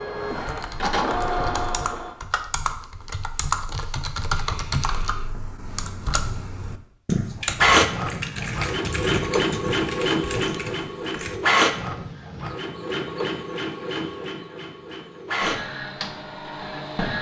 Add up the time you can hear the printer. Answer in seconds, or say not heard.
12 s.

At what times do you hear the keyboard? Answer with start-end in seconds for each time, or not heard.
0.3-11.4.